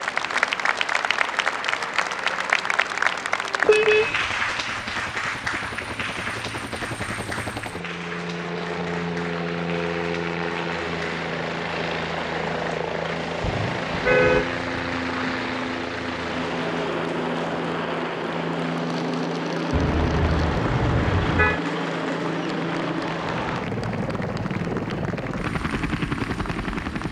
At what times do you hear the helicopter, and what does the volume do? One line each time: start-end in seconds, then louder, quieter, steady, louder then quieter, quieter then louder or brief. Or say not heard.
0.0-27.0 louder.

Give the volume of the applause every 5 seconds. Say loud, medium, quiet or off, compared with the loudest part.
loud, medium, quiet, quiet, quiet, quiet.